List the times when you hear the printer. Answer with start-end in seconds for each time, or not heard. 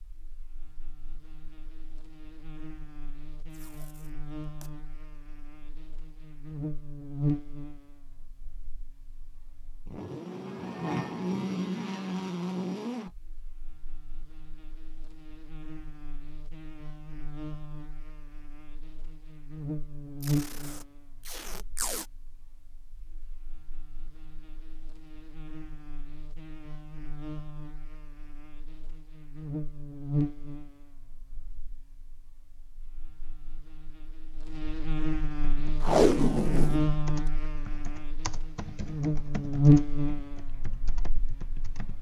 not heard.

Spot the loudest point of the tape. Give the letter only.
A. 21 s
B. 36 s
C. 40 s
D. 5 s
B.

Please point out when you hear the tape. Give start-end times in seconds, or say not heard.
3.5-4.7, 20.2-22.1, 35.8-36.9.